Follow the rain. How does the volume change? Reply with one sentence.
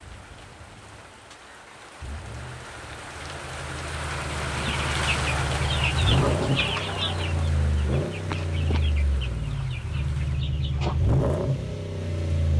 The volume of the rain goes up, then down.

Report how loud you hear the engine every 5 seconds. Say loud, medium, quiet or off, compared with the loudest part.
quiet, loud, loud.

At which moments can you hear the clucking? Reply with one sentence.
The clucking can be heard from 4.5 to 11.0 s.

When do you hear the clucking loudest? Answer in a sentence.
The loudest moment of the clucking is at 7 seconds.